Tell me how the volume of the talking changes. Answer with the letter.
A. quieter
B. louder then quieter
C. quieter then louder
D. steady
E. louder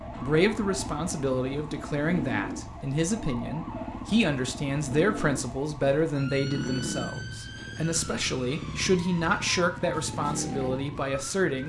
D.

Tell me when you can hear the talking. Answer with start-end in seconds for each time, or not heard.
0.1-11.6.